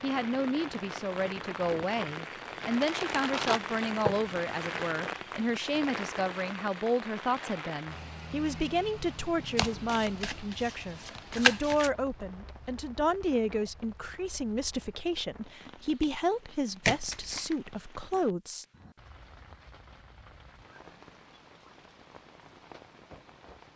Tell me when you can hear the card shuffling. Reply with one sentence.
You can hear the card shuffling from 2.7 to 4.2 s, from 9.6 to 11.9 s and from 16.9 to 17.6 s.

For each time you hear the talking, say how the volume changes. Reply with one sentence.
The talking can be heard from 0.0 to 18.6 s, at a steady volume.